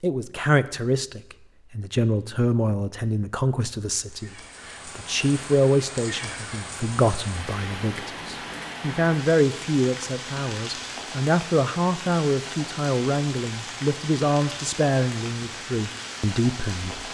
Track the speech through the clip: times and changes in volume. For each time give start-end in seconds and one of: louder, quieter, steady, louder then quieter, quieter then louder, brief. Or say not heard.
0.0-17.0 steady.